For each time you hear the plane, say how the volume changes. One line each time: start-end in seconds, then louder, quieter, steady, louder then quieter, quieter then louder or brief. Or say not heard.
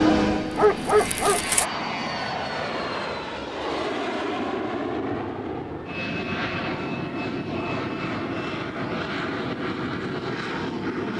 0.0-11.1 steady.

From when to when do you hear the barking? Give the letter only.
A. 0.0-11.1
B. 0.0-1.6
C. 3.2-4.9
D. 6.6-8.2
B.